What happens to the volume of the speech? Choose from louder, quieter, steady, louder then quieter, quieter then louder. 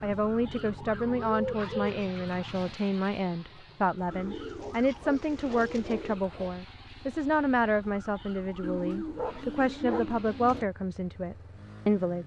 steady.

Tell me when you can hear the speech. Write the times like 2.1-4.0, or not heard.
0.0-12.2.